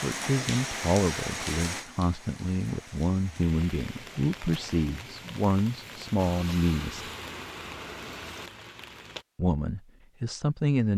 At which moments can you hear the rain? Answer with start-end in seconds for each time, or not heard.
0.0-9.2.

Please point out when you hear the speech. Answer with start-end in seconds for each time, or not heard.
0.0-7.1, 9.3-10.9.